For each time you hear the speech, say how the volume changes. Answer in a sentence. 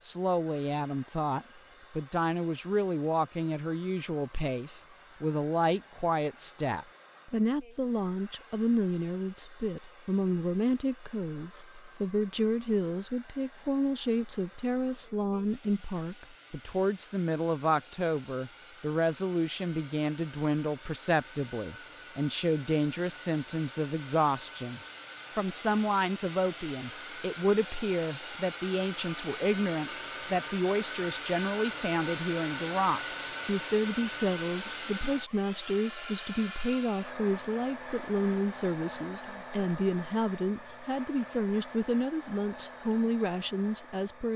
The speech can be heard from 0.0 to 44.3 s, at a steady volume.